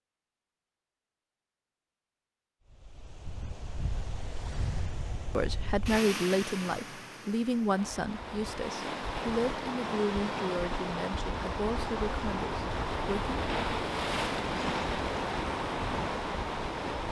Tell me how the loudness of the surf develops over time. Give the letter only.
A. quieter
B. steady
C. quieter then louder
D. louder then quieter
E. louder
E.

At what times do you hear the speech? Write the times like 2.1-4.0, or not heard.
5.3-13.3.